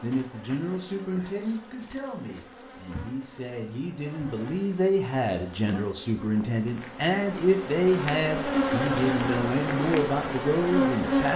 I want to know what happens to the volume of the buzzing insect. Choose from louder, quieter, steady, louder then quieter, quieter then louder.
louder.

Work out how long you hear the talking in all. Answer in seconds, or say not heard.
11 s.